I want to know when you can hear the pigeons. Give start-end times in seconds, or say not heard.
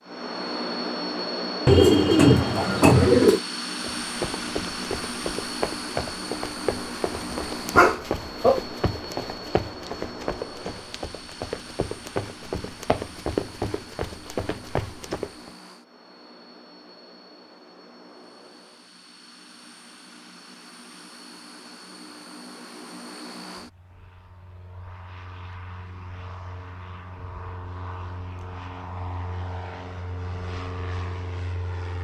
1.6-3.4.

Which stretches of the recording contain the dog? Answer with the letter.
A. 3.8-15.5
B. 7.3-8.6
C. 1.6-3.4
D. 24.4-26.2
B.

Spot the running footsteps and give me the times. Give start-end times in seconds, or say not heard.
3.8-15.5.